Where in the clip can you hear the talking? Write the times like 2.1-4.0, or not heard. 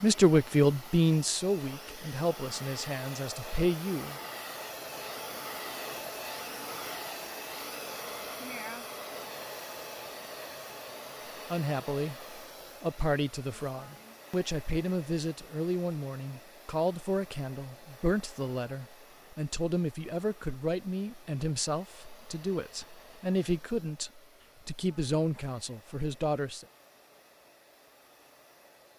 0.0-4.2, 11.5-26.6.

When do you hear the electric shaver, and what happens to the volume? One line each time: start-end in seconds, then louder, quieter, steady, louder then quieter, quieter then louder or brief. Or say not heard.
not heard.